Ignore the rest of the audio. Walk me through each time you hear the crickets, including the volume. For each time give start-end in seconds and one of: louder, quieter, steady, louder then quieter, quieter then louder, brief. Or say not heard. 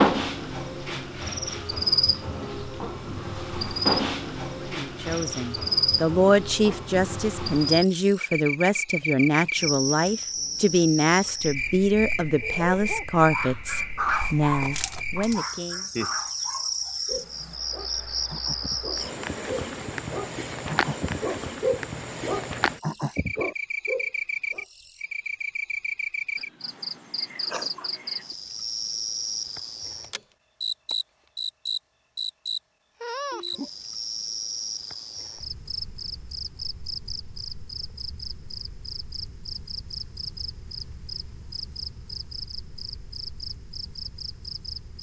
0.0-44.9 quieter.